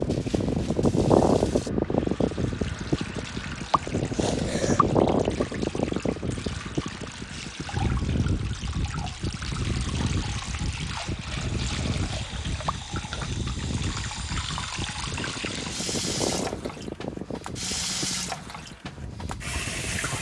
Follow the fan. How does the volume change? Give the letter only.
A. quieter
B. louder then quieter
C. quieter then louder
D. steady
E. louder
A.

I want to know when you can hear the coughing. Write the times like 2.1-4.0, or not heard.
3.7-4.8, 12.7-13.3.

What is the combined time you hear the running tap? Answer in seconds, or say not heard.
20 s.